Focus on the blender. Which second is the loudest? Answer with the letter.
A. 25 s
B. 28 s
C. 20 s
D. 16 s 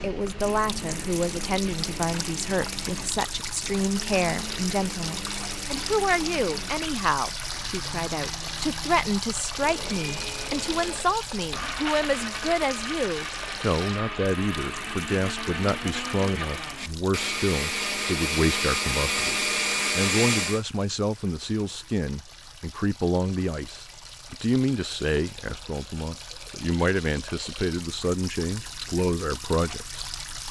C.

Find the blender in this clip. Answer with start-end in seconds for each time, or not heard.
0.0-20.6.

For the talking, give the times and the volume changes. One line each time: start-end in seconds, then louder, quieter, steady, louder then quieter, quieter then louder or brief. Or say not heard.
0.0-30.4 steady.